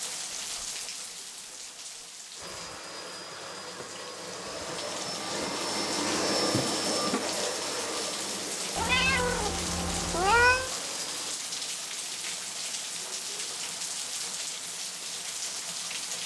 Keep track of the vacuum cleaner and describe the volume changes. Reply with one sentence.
The loudness of the vacuum cleaner goes up, then down.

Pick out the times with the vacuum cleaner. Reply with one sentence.
You can hear the vacuum cleaner from 2.4 to 11.4 s.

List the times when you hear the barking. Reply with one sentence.
You can't hear the barking here.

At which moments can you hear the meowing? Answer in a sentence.
You can hear the meowing from 8.8 to 10.7 s.